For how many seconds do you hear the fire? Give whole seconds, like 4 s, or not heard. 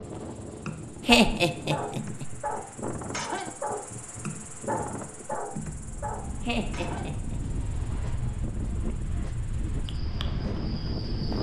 not heard.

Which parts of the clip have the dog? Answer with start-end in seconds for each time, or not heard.
0.7-7.1.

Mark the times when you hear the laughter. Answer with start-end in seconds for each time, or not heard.
1.1-2.2, 6.4-7.4.